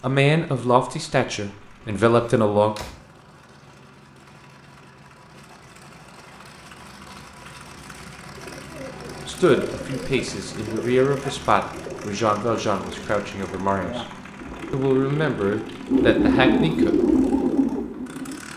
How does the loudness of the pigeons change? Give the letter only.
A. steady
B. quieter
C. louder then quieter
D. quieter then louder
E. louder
E.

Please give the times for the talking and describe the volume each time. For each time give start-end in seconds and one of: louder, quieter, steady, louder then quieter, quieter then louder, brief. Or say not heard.
0.0-2.8 brief
9.2-14.1 louder then quieter
14.7-16.9 brief.